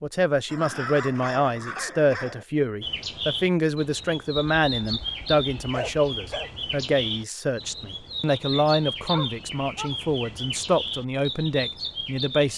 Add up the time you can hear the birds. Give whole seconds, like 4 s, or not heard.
10 s.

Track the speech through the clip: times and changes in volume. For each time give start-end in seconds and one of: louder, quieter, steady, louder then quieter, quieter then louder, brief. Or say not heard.
0.0-12.5 steady.